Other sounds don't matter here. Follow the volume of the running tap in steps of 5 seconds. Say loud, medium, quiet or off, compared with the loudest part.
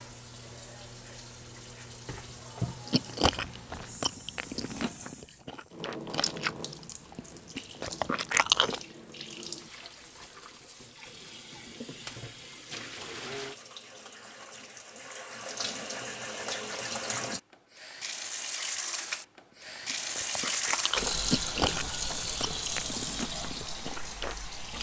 medium, medium, medium, loud, loud.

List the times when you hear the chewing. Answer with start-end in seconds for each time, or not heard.
2.9-8.8, 19.9-24.7.